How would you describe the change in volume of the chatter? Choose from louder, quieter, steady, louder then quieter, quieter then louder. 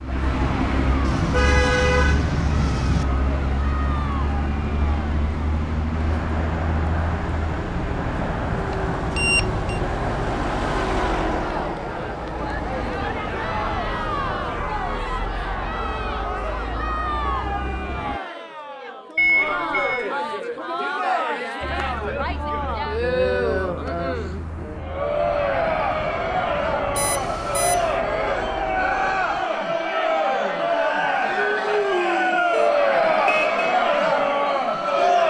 louder.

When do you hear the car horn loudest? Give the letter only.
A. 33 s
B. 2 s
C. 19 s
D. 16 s
B.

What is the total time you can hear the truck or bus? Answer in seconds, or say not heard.
26 s.